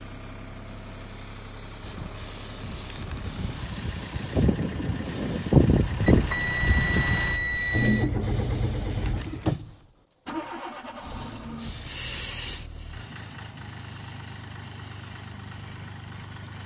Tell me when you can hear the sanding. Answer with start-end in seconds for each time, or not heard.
not heard.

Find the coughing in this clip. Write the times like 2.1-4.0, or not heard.
not heard.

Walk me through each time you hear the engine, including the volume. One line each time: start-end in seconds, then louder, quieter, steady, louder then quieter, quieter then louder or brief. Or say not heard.
0.0-16.6 louder then quieter.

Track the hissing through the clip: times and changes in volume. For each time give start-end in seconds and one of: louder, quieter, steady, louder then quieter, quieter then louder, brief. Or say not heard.
1.8-9.6 louder then quieter
11.6-16.6 quieter.